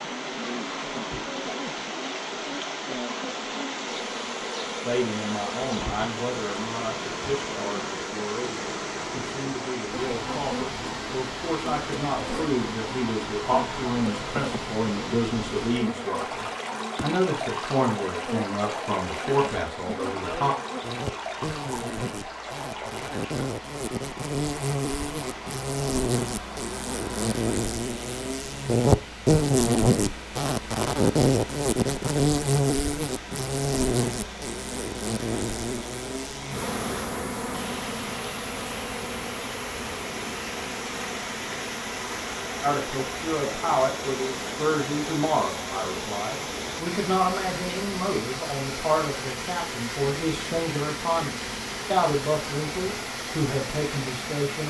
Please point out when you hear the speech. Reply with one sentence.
You can hear the speech from 4.8 to 20.6 s and from 42.6 to 54.6 s.